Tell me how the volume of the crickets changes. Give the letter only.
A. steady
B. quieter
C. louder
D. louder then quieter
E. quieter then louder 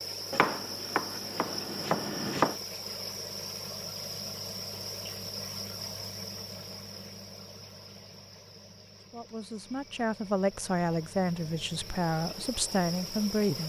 E.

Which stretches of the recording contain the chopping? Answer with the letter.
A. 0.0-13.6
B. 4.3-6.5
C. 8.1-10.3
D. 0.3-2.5
D.